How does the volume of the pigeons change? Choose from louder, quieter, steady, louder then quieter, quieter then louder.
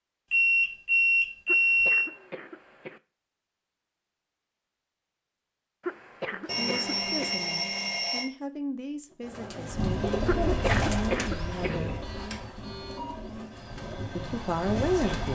quieter.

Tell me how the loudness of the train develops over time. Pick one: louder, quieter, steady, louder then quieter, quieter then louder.
quieter then louder.